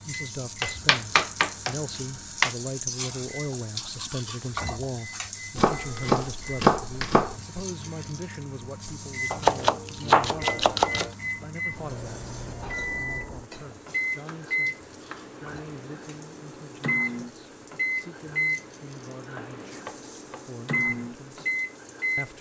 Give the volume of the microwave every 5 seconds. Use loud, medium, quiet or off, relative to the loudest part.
quiet, medium, loud, loud, loud.